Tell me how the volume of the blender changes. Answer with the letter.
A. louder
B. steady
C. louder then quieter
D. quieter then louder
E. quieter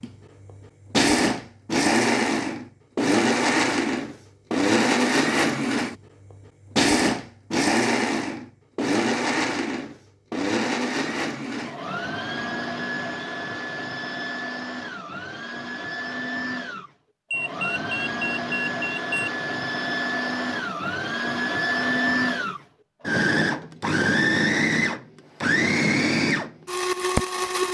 D.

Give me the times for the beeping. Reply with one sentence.
You can hear the beeping from 17.3 to 19.3 s.